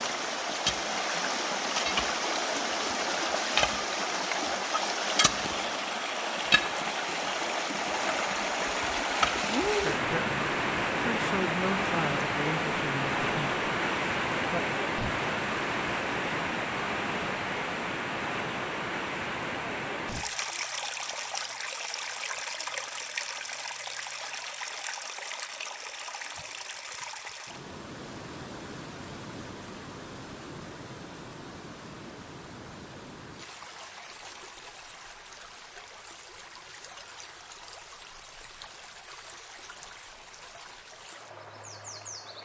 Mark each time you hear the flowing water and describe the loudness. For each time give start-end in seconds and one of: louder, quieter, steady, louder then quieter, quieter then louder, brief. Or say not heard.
0.0-42.4 quieter.